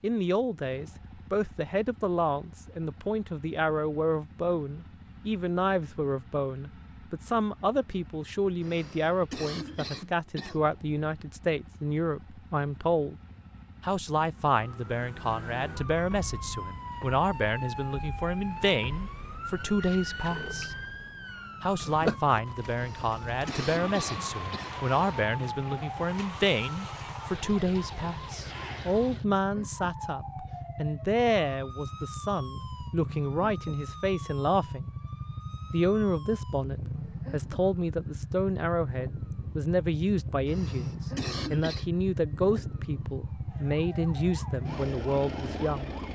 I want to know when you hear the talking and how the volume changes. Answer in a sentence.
You can hear the talking from 0.0 to 13.2 s, at a steady volume; from 13.8 to 20.8 s, at a steady volume; from 21.6 to 34.9 s, at a steady volume; and from 35.7 to 45.9 s, at a steady volume.